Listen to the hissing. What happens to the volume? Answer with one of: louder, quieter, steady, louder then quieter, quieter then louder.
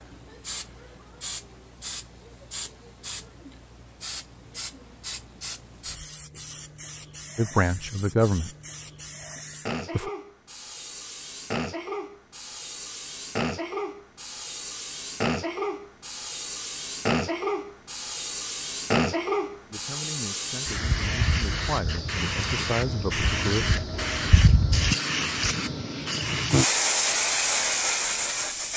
louder.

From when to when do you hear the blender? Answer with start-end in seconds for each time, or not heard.
not heard.